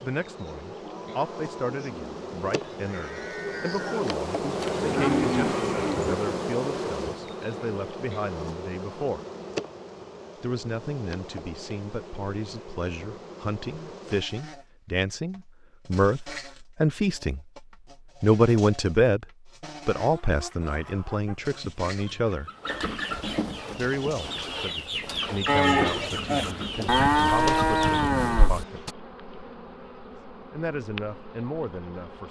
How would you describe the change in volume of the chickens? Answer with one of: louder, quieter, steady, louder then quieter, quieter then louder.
louder.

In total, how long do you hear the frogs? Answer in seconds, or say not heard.
not heard.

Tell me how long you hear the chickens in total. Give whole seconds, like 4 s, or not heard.
8 s.